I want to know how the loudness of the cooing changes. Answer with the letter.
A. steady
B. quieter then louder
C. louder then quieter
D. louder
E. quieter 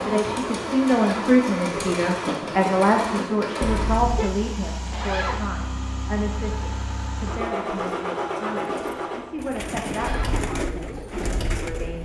D.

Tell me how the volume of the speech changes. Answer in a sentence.
The loudness of the speech goes down.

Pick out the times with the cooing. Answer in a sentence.
The cooing can be heard from 7.8 to 12.0 s.